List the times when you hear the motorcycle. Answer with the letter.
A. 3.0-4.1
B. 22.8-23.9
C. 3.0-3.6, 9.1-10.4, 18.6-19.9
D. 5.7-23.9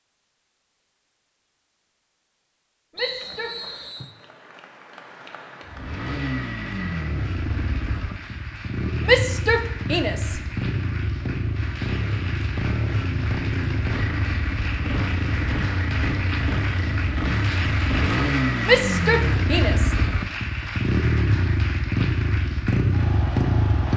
D.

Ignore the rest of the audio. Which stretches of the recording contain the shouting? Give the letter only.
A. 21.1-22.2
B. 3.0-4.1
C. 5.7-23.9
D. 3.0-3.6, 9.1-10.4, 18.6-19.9
D.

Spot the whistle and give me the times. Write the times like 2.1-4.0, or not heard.
3.0-4.1.